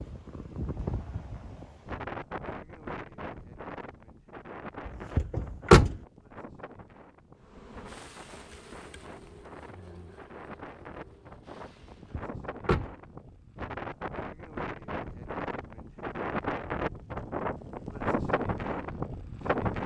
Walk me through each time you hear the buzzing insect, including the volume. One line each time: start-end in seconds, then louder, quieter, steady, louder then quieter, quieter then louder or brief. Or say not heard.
7.3-12.3 quieter.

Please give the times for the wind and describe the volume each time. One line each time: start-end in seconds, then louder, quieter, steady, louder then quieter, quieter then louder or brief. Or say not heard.
0.0-19.8 quieter then louder.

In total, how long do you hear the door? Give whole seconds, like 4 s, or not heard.
2 s.